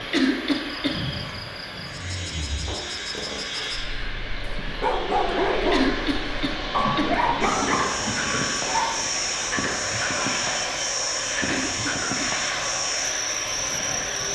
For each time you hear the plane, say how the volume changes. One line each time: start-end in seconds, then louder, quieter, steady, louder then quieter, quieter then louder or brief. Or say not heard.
0.0-14.2 louder.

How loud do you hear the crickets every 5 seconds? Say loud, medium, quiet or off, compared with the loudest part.
medium, loud, loud.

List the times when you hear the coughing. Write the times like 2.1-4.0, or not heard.
0.1-1.0, 5.7-7.1, 11.4-12.3.